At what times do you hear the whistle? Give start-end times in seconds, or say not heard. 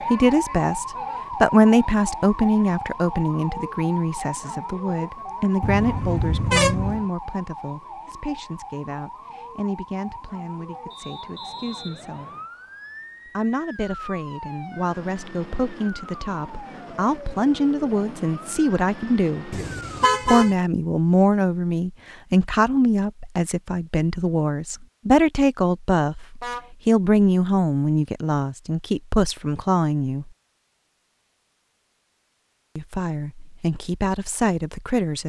10.9-12.4.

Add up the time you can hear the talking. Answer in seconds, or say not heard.
31 s.